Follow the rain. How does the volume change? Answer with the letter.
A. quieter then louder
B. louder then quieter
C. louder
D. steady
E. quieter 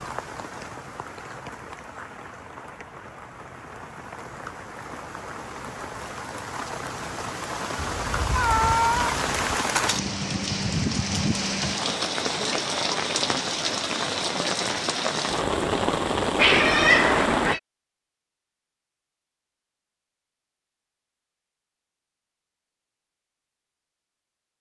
C.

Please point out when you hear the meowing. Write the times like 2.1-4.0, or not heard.
7.8-9.4, 16.4-17.6.